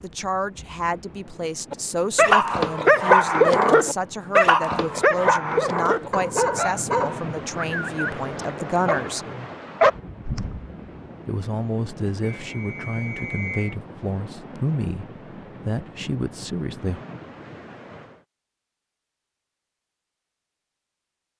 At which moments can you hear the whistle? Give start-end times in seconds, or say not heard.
12.4-13.8.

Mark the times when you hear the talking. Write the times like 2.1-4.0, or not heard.
0.0-9.2, 11.2-17.0.